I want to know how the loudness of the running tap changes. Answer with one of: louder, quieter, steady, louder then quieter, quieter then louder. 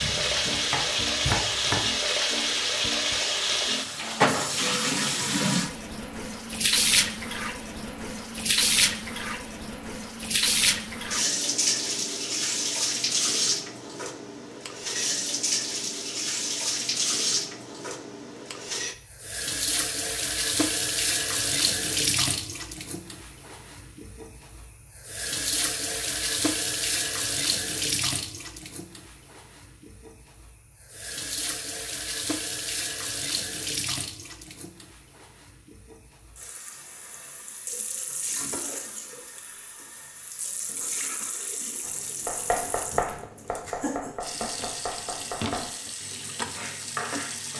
quieter.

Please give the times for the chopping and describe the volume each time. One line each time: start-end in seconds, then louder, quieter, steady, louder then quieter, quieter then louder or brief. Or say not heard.
0.0-1.9 brief
41.8-47.5 quieter.